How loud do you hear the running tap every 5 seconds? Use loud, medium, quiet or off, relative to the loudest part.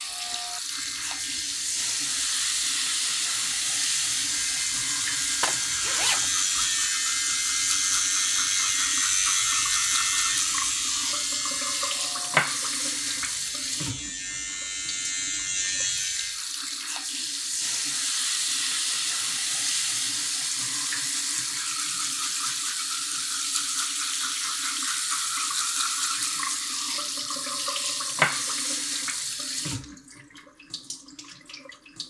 loud, loud, loud, loud, loud, loud, quiet.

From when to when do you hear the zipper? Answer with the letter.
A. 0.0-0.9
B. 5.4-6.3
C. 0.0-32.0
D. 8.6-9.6
B.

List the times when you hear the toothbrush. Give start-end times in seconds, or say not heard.
not heard.